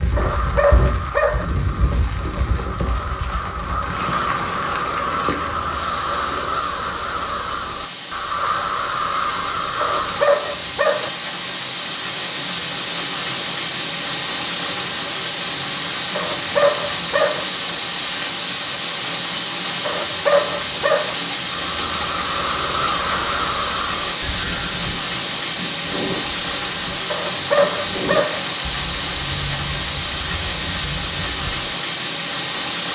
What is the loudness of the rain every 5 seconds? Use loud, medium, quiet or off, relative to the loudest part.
medium, medium, loud, loud, loud, loud, loud.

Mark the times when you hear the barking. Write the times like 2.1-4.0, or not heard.
0.1-1.4, 9.8-11.1, 16.1-17.4, 19.9-21.1, 27.1-28.4.